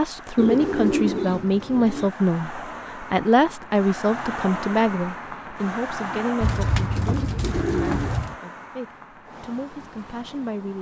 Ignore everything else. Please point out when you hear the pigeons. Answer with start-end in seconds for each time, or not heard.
0.3-2.1, 6.4-8.3.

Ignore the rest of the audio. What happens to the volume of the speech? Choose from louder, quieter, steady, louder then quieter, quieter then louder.
quieter.